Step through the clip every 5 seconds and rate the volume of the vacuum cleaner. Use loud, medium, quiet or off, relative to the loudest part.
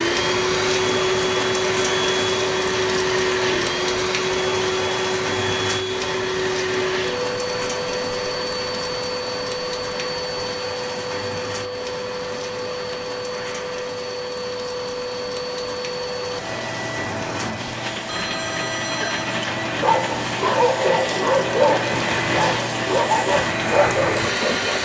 loud, loud, medium, medium, loud.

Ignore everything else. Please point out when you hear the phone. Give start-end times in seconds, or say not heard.
18.1-19.4.